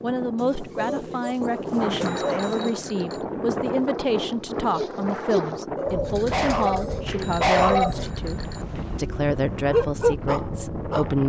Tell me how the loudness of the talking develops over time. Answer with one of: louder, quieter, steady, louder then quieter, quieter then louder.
steady.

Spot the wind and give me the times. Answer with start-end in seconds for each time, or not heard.
0.0-11.2.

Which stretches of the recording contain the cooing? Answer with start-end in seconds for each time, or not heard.
0.3-2.8, 5.8-7.2.